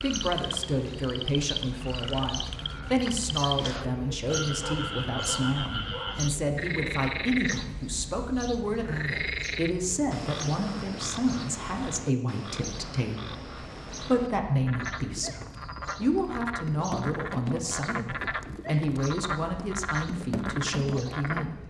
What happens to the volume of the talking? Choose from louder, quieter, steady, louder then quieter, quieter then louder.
steady.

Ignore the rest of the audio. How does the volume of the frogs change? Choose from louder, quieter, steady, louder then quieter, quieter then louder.
steady.